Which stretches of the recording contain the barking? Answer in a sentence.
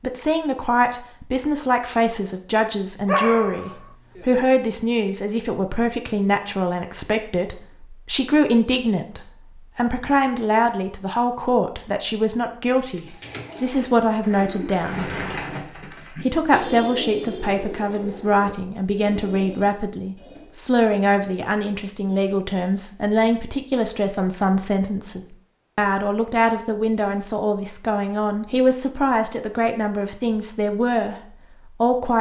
You can hear the barking from 3.0 to 4.5 s.